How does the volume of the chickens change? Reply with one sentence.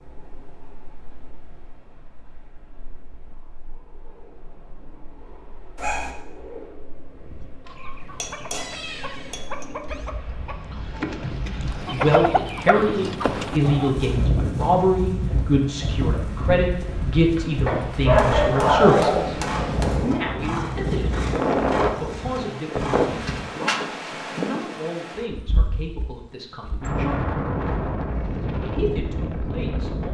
The volume of the chickens goes up.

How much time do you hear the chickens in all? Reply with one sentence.
The chickens can be heard for 7 seconds in total.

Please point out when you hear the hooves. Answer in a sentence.
You can hear the hooves from 13.5 to 23.6 s.